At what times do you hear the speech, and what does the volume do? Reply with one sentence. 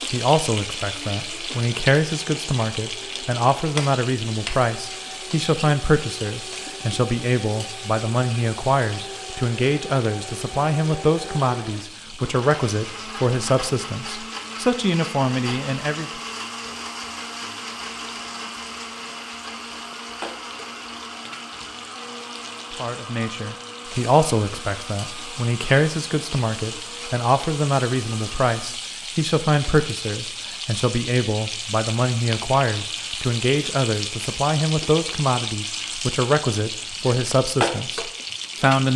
You can hear the speech from 0.1 to 16.1 s, at a steady volume; and from 22.7 to 38.9 s, at a steady volume.